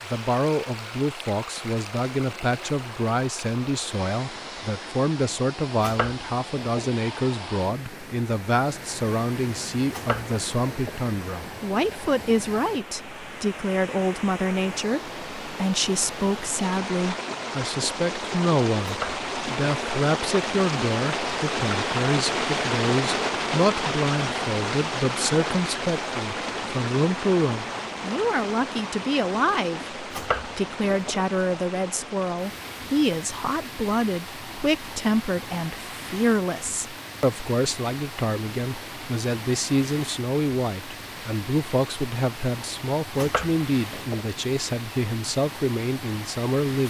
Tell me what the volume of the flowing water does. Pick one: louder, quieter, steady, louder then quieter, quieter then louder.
louder then quieter.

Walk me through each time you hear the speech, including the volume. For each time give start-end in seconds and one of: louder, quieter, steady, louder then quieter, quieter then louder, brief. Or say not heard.
0.1-46.8 steady.